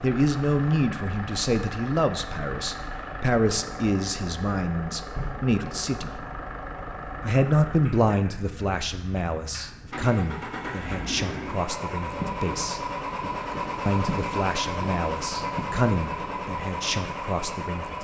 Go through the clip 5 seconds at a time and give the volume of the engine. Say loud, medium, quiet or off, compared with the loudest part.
medium, medium, loud, loud.